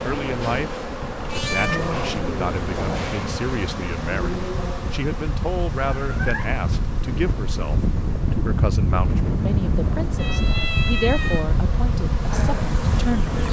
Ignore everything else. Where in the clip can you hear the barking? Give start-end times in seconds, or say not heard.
not heard.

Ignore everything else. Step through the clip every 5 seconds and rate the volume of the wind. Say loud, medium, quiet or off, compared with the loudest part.
medium, loud, loud.